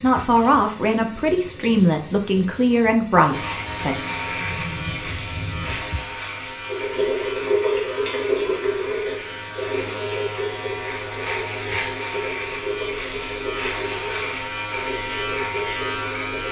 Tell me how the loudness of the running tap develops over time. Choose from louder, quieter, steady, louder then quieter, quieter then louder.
louder then quieter.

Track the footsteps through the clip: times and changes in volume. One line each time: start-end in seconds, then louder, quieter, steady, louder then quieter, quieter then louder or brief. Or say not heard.
not heard.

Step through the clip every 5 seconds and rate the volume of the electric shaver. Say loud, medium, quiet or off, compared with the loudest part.
loud, medium, loud, loud.